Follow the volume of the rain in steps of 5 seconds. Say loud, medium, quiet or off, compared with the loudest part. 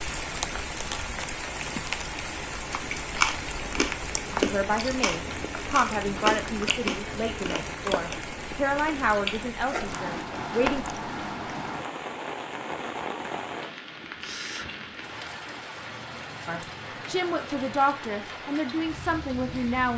loud, loud, loud, medium.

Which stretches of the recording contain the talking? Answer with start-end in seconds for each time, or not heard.
4.3-10.8, 16.4-19.9.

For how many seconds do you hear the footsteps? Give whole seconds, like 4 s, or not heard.
not heard.